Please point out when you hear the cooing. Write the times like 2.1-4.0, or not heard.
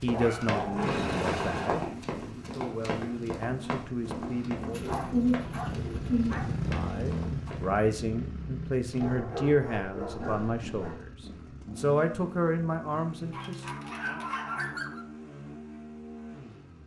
4.7-6.5.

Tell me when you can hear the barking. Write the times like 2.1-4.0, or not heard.
0.1-1.9, 4.8-6.7, 9.0-11.0, 13.3-15.1.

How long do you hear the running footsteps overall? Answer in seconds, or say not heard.
8 s.